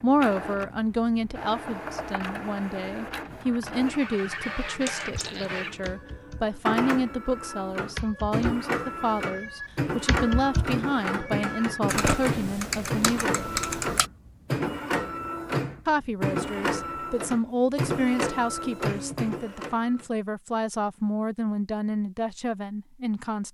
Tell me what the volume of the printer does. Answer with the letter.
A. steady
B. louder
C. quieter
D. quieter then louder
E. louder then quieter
B.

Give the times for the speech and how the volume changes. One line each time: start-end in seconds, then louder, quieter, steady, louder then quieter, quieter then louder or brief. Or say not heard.
0.0-13.6 steady
15.8-23.4 steady.